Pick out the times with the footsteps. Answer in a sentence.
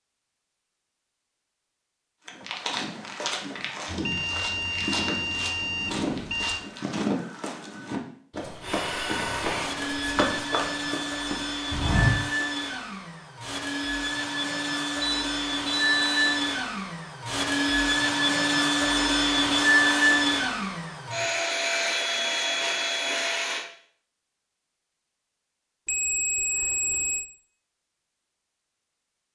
The footsteps can be heard from 2.2 to 12.4 s.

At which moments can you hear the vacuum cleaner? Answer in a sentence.
You can hear the vacuum cleaner from 8.6 to 23.6 s.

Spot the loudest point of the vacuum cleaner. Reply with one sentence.
The loudest moment of the vacuum cleaner is at 20 seconds.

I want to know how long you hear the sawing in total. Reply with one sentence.
You can't hear the sawing here.